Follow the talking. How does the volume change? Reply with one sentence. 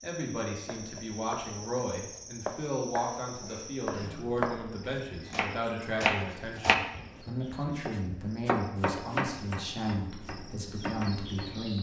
The volume of the talking stays about the same.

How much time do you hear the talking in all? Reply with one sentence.
You can hear the talking for 12 seconds altogether.